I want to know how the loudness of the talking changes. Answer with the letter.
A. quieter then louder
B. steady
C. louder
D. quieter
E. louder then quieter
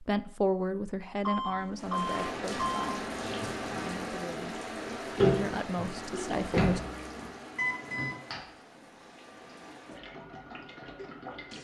A.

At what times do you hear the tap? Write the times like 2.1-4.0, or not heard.
1.8-11.5.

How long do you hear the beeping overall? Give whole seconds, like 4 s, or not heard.
2 s.